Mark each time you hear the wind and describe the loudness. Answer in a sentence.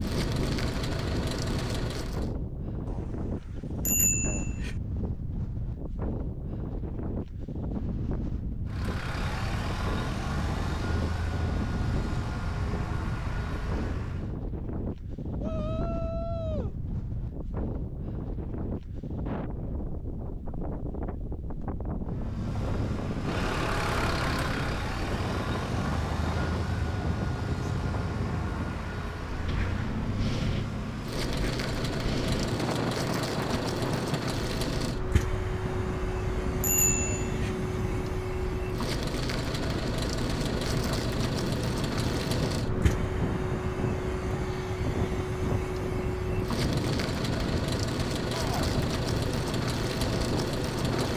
The wind can be heard from 0.0 to 51.1 s, at a steady volume.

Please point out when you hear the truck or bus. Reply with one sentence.
You can hear the truck or bus from 0.0 to 2.3 s, from 8.7 to 14.3 s and from 22.1 to 51.1 s.